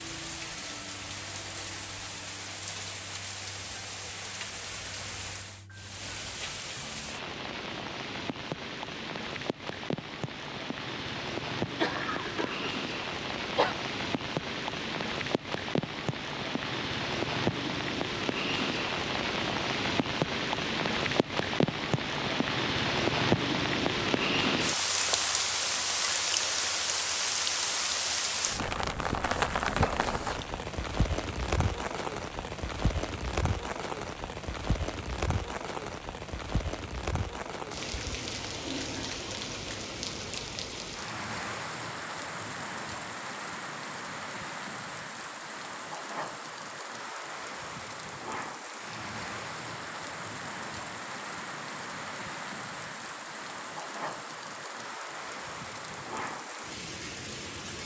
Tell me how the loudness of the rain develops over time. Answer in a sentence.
The loudness of the rain goes up, then down.